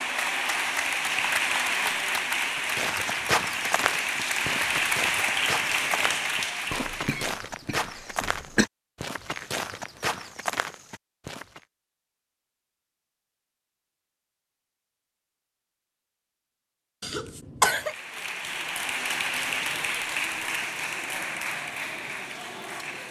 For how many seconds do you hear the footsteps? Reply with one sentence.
The footsteps can be heard for 9 seconds in total.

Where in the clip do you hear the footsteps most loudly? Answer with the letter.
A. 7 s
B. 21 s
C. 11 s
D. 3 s
D.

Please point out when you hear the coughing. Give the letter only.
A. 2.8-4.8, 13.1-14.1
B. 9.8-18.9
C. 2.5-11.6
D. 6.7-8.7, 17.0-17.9
D.